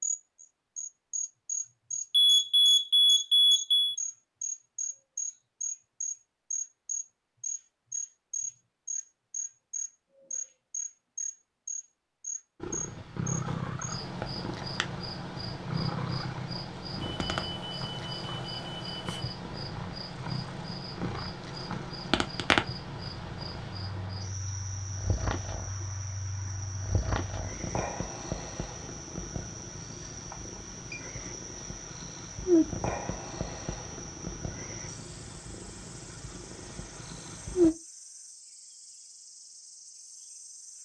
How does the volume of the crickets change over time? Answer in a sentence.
The volume of the crickets goes down.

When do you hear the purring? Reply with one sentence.
You can hear the purring from 12.6 to 37.8 s.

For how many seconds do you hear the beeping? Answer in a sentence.
The beeping can be heard for 5 seconds in total.